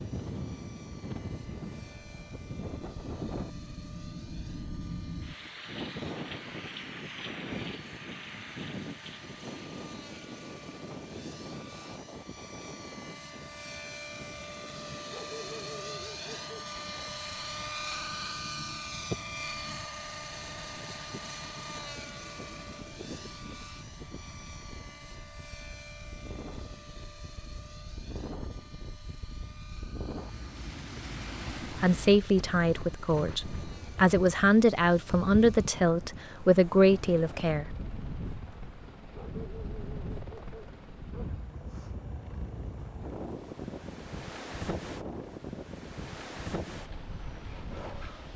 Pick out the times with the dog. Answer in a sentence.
The dog can be heard from 15.1 to 16.8 s and from 39.1 to 41.3 s.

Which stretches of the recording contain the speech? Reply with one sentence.
The speech can be heard from 31.7 to 37.8 s.